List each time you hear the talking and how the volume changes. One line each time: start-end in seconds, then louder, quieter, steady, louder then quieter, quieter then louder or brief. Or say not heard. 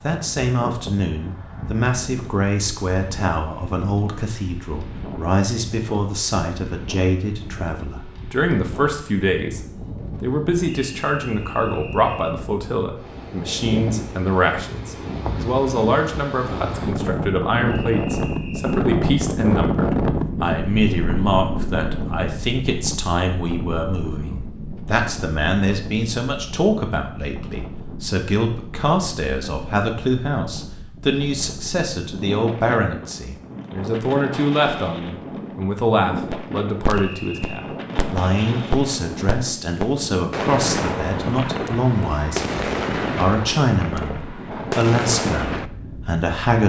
0.0-42.5 steady
43.1-44.1 brief
44.8-46.6 brief.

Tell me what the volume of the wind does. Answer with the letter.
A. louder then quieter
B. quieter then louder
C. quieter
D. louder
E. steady
A.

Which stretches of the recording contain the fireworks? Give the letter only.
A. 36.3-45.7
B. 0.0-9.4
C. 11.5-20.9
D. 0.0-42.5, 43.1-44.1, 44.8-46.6
A.